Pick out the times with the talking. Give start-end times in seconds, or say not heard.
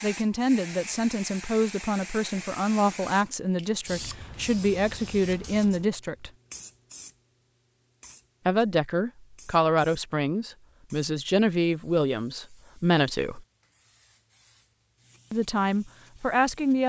0.0-6.3, 8.4-13.4, 15.3-16.8.